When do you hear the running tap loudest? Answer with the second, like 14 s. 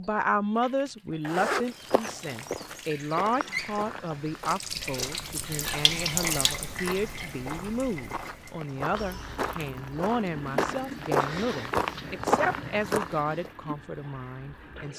6 s.